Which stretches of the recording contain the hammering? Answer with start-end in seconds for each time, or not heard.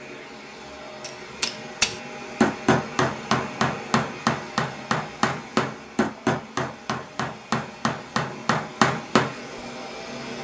1.0-9.3.